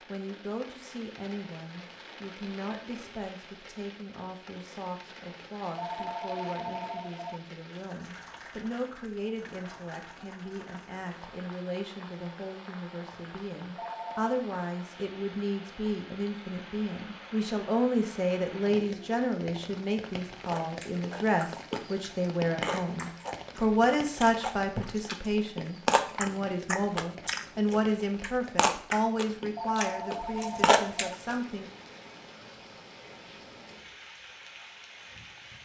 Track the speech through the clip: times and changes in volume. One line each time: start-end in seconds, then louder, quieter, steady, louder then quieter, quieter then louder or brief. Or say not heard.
0.1-31.7 louder.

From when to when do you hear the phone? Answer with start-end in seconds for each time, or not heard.
5.8-7.4, 13.8-14.3, 29.6-31.2.